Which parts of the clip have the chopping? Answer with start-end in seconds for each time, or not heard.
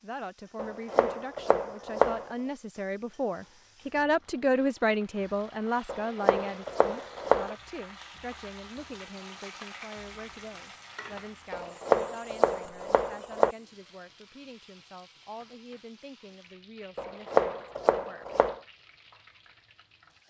0.6-2.4, 5.8-7.5, 11.5-13.6, 16.9-18.6.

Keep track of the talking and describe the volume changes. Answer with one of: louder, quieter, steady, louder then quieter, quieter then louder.
louder then quieter.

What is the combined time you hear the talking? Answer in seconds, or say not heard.
18 s.